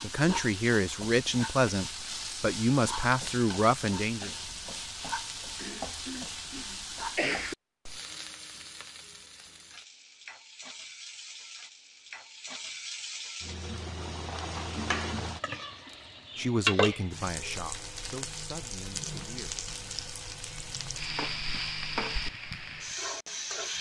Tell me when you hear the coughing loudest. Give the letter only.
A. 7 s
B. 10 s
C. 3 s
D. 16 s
A.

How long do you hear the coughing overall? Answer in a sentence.
The coughing can be heard for 2 seconds in total.